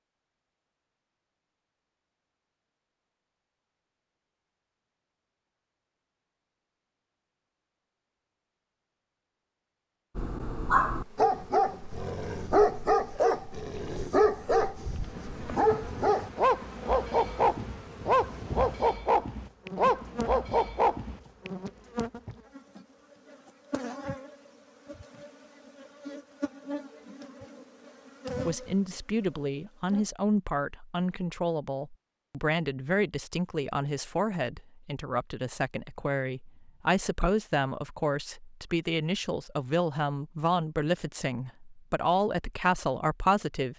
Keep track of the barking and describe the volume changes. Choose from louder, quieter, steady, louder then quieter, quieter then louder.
steady.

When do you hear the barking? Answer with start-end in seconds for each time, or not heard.
10.2-21.2.